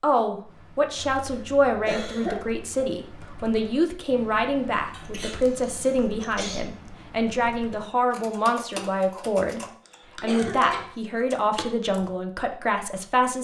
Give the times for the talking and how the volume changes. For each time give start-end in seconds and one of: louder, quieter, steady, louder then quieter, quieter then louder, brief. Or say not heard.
0.0-13.3 steady.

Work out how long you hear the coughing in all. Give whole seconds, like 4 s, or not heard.
4 s.